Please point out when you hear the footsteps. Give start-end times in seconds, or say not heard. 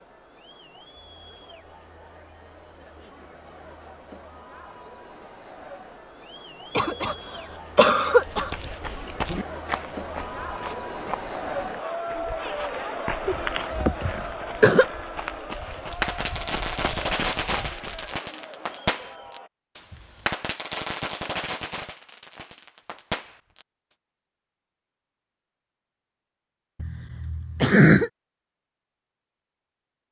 8.2-18.1.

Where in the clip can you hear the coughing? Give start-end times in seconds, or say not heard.
6.8-7.2, 7.8-8.5, 13.2-14.8, 26.8-28.1.